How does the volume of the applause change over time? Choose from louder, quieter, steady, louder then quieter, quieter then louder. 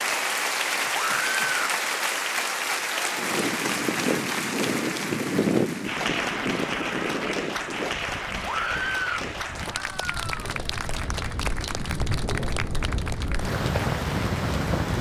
quieter.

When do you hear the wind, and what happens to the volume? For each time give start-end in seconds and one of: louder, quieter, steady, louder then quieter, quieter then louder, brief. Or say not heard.
3.1-14.9 quieter then louder.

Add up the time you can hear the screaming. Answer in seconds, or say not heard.
2 s.